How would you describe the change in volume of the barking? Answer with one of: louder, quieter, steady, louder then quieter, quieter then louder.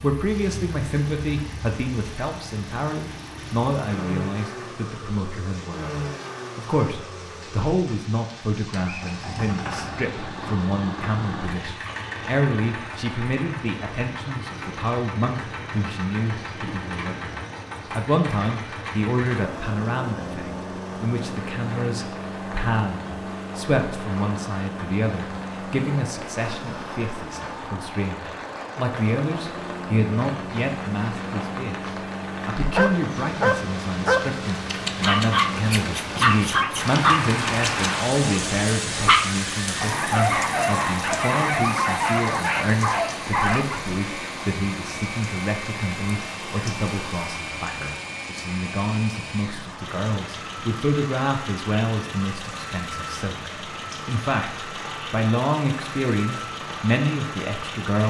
steady.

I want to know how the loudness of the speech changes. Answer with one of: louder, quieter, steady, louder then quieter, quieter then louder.
steady.